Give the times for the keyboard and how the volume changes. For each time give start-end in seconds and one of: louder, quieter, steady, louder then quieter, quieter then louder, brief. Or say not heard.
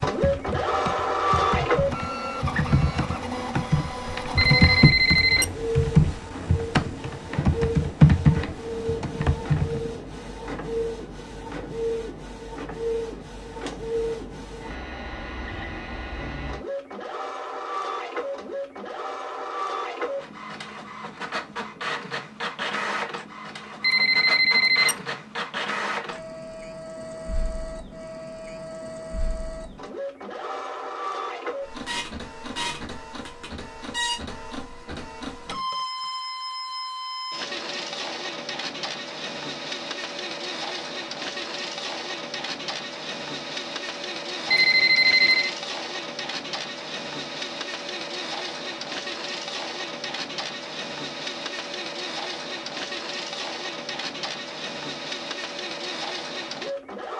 0.0-9.9 louder.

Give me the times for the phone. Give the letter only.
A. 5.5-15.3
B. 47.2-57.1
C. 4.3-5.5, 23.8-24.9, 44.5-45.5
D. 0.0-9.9
C.